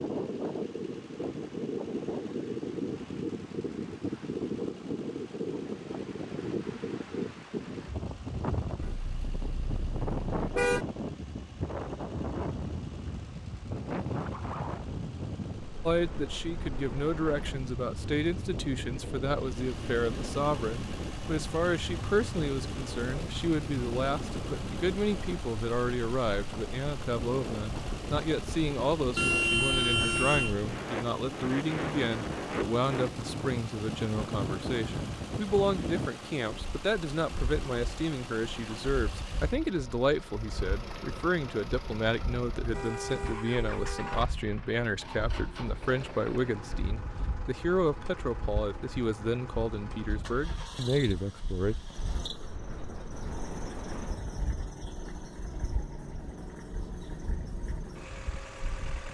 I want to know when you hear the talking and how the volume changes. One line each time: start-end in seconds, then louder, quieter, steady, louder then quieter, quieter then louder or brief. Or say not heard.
15.8-51.8 steady.